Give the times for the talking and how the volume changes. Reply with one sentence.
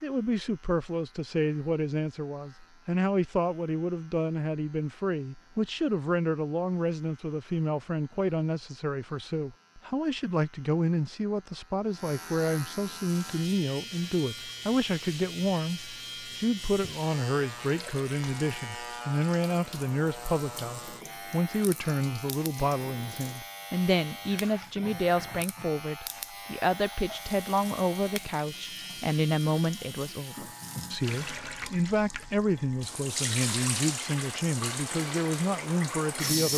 You can hear the talking from 0.0 to 36.5 s, at a steady volume.